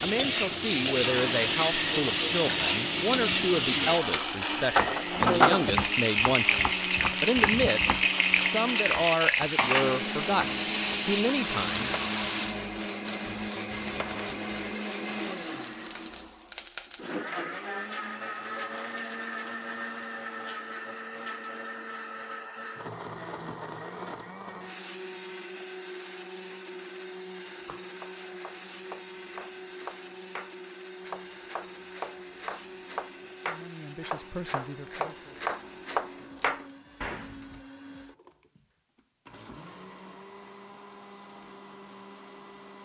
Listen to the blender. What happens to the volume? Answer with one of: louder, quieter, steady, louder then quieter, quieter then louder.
quieter.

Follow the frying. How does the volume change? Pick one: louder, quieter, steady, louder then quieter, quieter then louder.
steady.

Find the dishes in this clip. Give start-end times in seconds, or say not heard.
not heard.